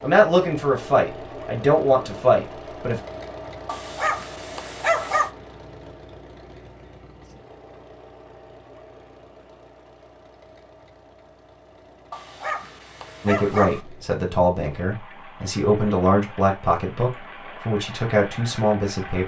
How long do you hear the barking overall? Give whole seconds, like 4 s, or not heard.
3 s.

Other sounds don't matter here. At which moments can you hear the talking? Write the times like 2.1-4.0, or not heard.
0.0-3.0, 13.2-19.2.